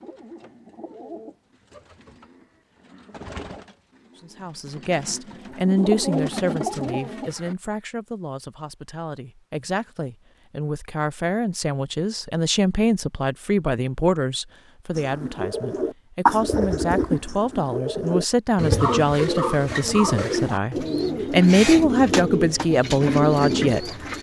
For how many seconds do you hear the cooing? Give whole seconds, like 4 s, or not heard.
17 s.